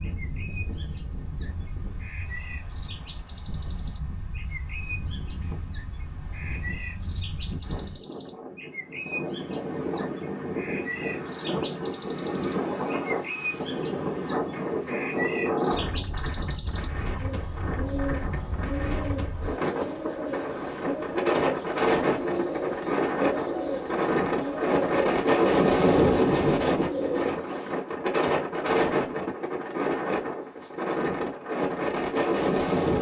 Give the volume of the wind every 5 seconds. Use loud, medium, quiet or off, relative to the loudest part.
quiet, quiet, medium, medium, loud, loud, loud.